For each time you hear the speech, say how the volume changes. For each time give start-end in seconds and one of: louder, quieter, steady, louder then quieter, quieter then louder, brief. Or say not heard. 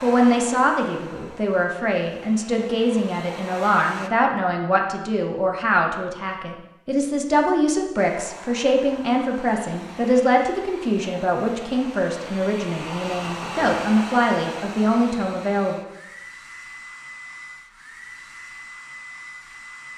0.0-15.8 steady.